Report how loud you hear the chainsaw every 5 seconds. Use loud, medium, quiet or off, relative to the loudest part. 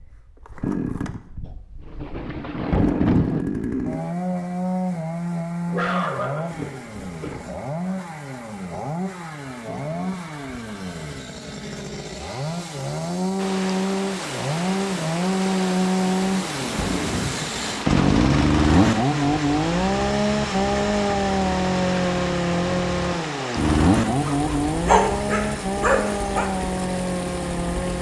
medium, medium, medium, loud, loud, medium.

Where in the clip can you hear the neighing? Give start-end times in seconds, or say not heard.
not heard.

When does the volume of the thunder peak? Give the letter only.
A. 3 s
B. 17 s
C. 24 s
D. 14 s
A.